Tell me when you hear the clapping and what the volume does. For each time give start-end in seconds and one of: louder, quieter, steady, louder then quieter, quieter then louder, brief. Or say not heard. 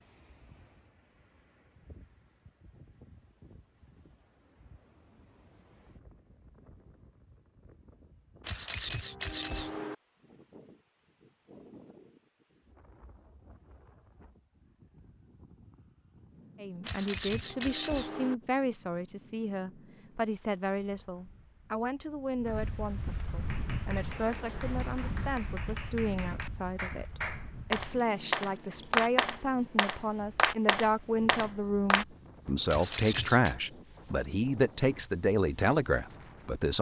23.4-32.0 louder.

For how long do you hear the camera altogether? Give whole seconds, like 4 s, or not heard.
4 s.